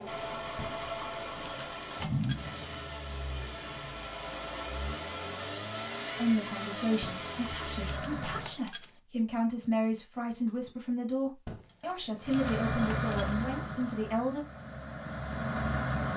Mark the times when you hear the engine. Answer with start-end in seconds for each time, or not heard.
0.0-8.6, 12.2-16.1.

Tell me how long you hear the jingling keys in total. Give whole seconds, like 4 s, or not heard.
6 s.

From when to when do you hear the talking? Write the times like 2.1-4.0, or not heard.
6.2-14.4.